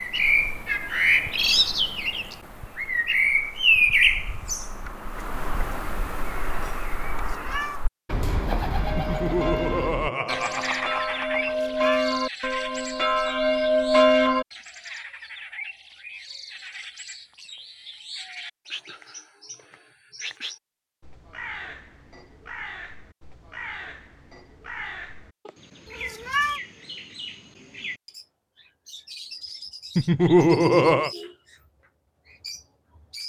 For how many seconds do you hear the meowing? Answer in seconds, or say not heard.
2 s.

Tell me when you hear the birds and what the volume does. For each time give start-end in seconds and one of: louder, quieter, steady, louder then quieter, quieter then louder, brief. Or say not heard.
0.0-33.2 quieter.